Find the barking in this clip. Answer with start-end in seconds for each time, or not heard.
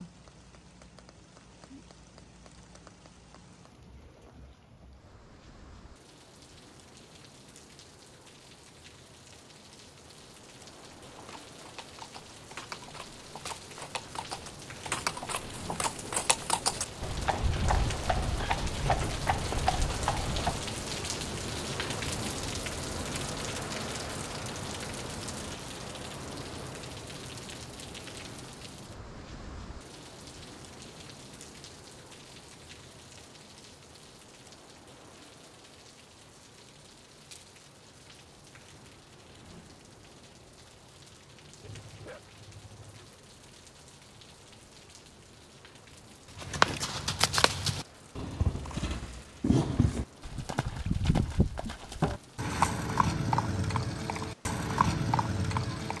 41.6-43.2.